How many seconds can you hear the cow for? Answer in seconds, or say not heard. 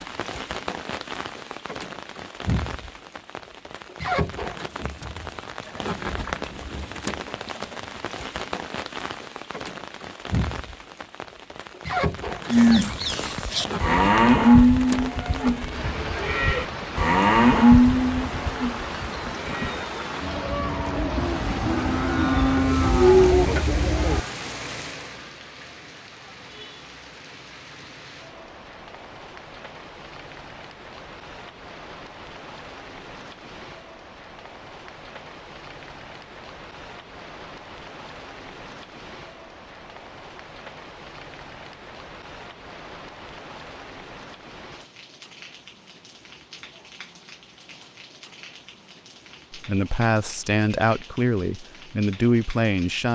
12 s.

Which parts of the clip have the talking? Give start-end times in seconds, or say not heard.
49.5-53.1.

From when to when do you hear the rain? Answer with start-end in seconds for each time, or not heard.
0.0-53.1.